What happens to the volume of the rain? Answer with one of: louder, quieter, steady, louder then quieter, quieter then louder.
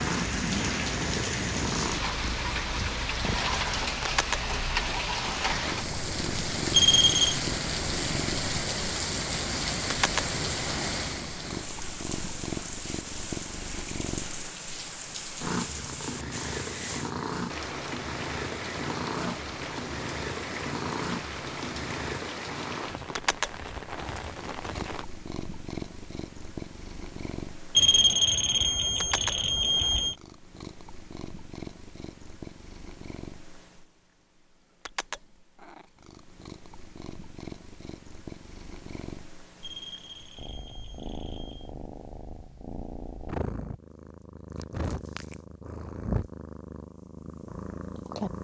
quieter.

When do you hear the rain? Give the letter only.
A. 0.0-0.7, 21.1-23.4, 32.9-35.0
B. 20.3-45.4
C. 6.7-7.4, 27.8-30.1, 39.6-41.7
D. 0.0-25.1
D.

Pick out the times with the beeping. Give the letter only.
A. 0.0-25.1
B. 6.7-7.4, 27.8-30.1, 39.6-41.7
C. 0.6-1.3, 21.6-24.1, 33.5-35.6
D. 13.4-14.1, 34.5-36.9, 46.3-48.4
B.